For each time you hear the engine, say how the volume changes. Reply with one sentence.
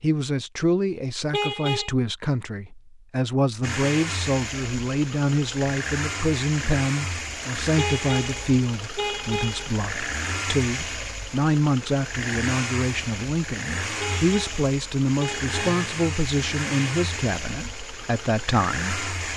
The engine can be heard from 3.6 to 19.3 s, at a steady volume.